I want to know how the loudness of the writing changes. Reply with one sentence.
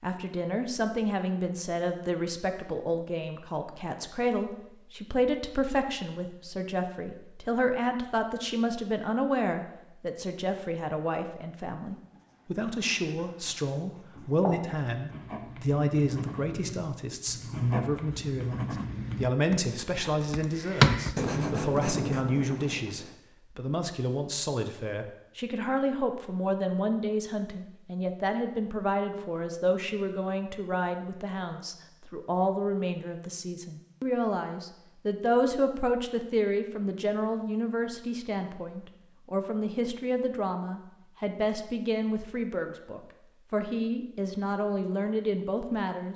The volume of the writing goes up.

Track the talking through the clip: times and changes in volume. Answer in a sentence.
The talking can be heard from 0.0 to 46.1 s, at a steady volume.